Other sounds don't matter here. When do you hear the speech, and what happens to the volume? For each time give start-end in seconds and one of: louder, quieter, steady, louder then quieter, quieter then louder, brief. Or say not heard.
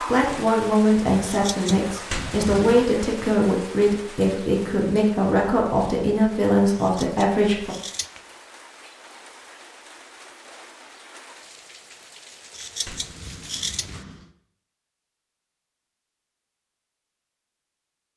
0.0-7.8 steady.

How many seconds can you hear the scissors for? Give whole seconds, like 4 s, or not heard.
3 s.